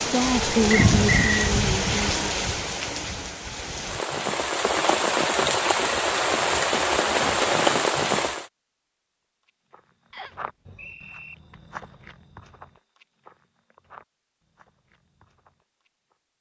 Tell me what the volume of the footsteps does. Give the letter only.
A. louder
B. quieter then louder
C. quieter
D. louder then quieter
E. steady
C.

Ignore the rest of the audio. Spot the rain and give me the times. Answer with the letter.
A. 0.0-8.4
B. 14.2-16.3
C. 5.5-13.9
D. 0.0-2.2
A.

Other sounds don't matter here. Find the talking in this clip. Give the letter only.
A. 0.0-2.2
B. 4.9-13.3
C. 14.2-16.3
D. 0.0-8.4
A.